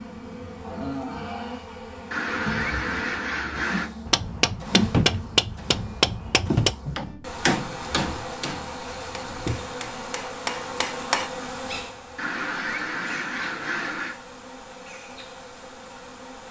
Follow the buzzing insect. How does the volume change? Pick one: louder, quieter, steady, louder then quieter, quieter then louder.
quieter.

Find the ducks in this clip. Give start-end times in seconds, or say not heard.
2.1-3.9, 12.2-14.2.